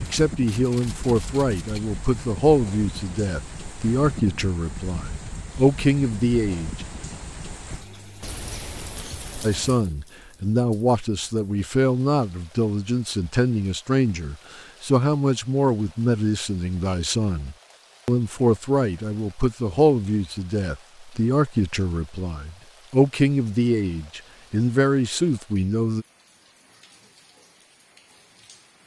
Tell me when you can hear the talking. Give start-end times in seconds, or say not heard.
0.0-6.8, 9.4-26.1.